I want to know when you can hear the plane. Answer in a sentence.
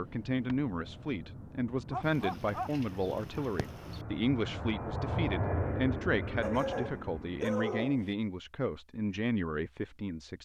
You can hear the plane from 0.0 to 7.5 s.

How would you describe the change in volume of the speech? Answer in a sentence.
The volume of the speech stays about the same.